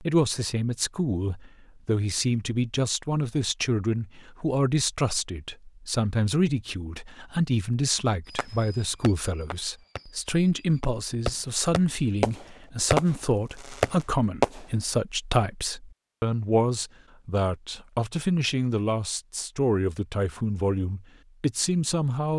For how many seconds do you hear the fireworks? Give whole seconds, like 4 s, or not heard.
6 s.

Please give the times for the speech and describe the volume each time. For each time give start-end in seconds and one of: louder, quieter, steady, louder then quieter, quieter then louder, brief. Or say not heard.
0.0-22.3 steady.